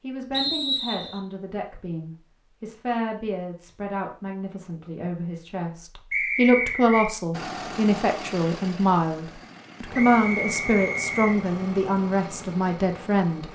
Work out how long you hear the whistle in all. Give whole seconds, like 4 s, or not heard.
3 s.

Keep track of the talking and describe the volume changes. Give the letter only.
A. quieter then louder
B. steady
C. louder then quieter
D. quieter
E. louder
E.